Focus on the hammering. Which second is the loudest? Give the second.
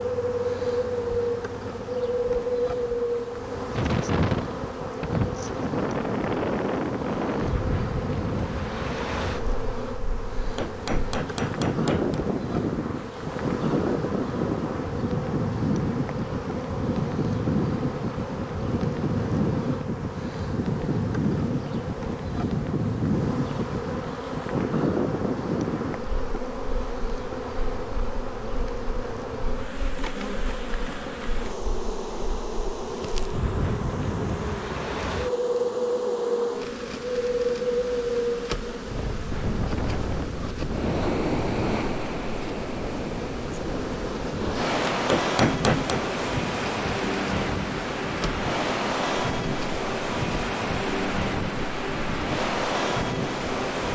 46 s.